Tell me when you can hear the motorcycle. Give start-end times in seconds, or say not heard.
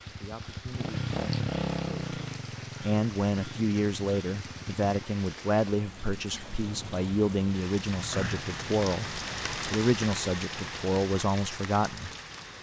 0.0-5.1.